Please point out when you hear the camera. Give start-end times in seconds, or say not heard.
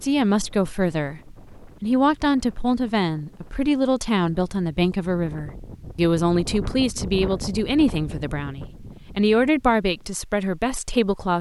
not heard.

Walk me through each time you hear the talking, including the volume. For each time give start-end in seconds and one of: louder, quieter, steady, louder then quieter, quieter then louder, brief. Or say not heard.
0.0-11.3 steady.